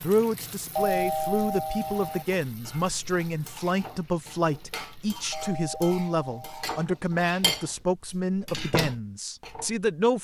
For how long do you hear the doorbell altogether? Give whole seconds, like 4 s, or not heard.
3 s.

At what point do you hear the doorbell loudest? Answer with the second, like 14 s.
1 s.